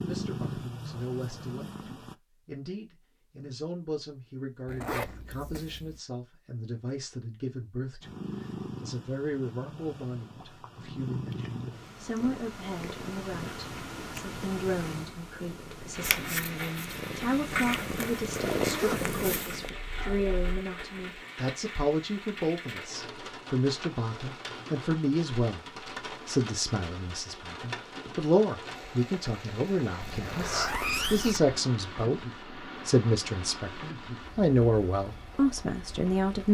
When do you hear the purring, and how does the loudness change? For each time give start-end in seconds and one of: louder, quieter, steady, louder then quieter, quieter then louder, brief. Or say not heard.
0.0-2.1 brief
8.0-20.6 louder.